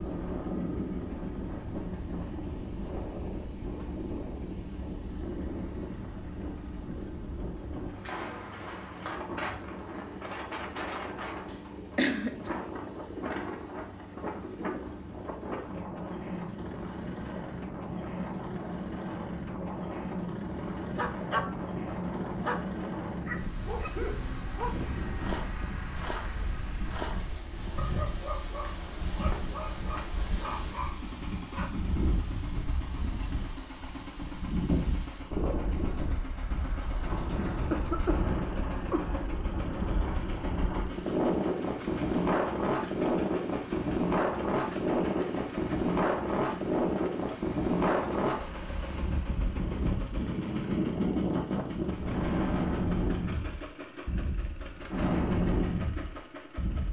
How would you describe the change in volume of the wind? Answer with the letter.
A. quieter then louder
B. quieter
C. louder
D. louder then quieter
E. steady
C.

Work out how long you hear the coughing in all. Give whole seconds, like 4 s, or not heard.
3 s.